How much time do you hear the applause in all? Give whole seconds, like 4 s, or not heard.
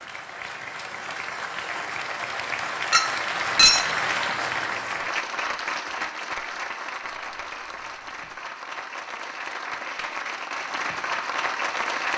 12 s.